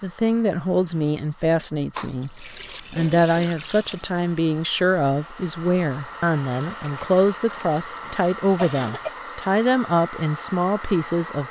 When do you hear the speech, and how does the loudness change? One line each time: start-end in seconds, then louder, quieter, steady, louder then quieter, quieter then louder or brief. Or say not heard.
0.0-11.4 steady.